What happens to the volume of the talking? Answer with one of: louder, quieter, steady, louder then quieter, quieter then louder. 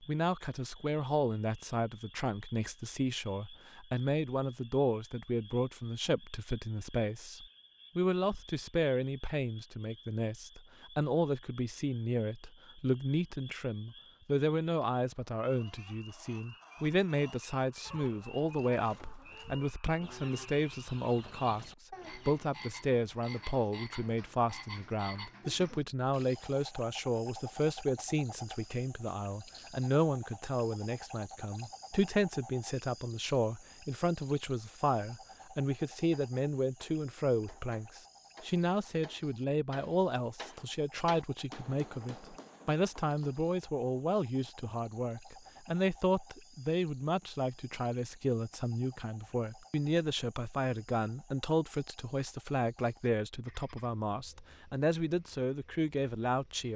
steady.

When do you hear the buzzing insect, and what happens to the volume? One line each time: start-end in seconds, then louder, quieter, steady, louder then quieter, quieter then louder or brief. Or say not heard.
not heard.